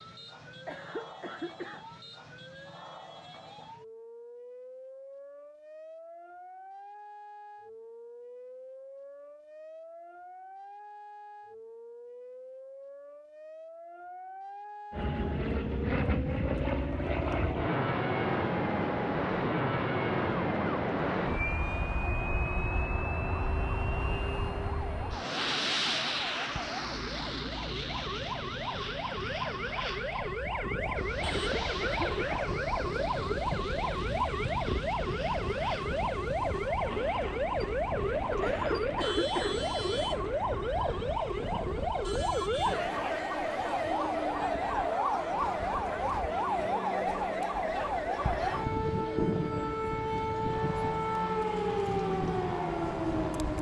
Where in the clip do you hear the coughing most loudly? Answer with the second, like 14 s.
39 s.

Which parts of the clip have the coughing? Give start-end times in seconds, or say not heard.
0.5-1.9, 31.1-32.5, 38.2-39.5.